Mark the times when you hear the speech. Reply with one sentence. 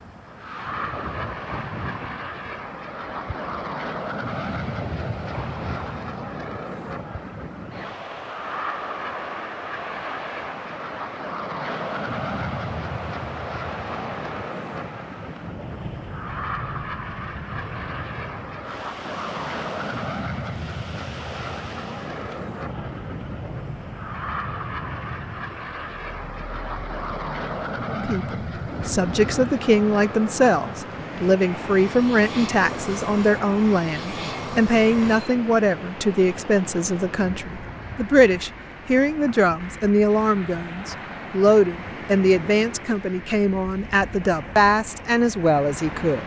The speech can be heard from 27.9 to 46.2 s.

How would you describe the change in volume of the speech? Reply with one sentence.
The loudness of the speech stays about the same.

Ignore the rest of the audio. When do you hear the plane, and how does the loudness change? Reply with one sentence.
The plane can be heard from 0.0 to 35.4 s, at a steady volume.